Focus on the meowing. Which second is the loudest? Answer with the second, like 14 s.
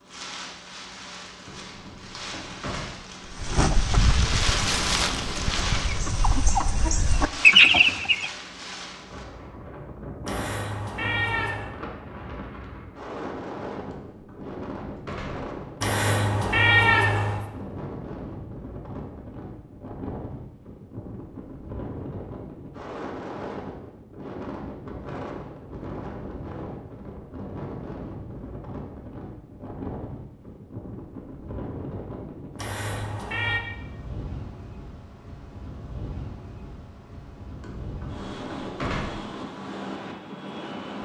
17 s.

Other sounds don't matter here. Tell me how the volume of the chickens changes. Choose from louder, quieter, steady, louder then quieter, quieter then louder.
quieter then louder.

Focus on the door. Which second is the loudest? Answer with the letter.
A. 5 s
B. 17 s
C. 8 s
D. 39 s
D.